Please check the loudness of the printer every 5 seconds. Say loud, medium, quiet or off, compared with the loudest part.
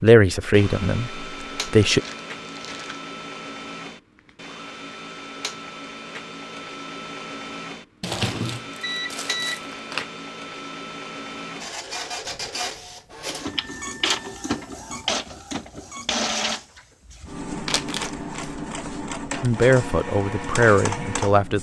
medium, medium, loud, loud, loud.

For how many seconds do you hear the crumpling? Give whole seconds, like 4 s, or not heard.
4 s.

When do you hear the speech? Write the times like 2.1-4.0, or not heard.
0.0-2.0, 19.4-21.5.